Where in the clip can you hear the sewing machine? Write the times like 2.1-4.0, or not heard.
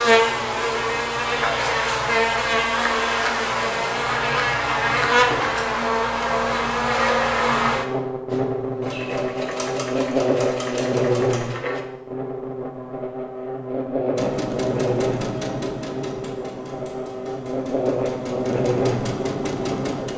8.3-11.8, 14.2-20.1.